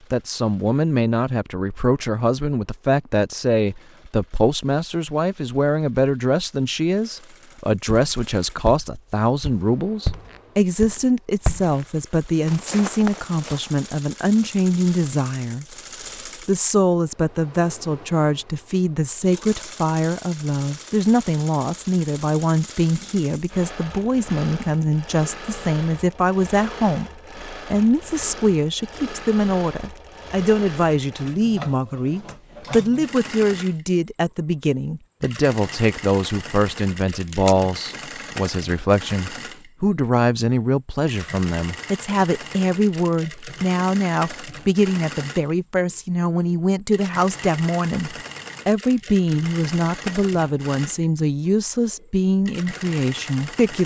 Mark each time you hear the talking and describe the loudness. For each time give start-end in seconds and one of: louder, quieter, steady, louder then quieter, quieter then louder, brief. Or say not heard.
0.1-15.7 steady
16.4-53.8 steady.